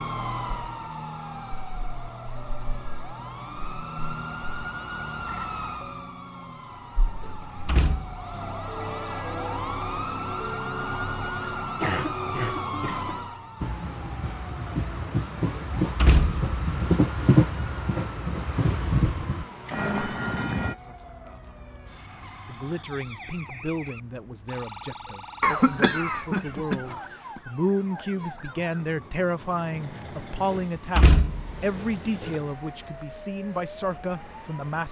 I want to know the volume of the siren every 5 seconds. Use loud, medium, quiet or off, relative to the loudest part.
loud, loud, loud, medium, medium, medium, medium.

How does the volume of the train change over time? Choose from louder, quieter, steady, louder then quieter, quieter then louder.
louder then quieter.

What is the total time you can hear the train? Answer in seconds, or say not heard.
7 s.